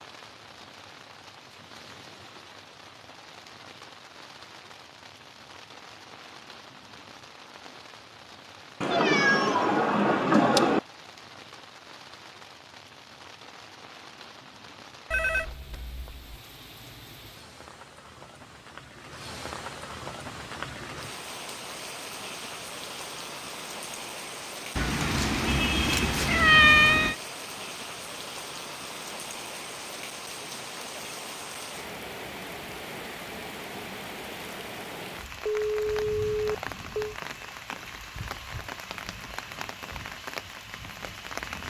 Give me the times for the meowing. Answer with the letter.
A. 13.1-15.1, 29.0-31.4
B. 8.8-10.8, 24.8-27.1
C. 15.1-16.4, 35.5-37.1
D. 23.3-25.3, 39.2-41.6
B.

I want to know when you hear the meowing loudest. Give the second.
27 s.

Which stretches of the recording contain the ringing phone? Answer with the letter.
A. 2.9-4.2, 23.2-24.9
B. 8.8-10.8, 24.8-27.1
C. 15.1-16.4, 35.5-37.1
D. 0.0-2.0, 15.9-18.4
C.